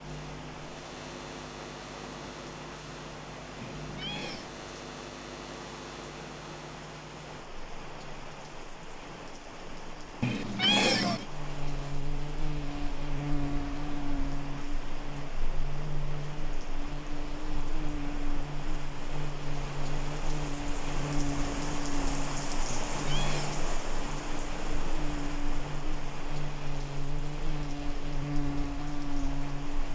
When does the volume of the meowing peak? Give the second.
11 s.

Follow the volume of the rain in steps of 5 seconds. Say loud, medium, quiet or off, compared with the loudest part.
medium, medium, medium, medium, loud, medium.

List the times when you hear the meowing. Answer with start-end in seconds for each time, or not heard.
3.6-4.5, 10.2-11.2, 22.6-23.6.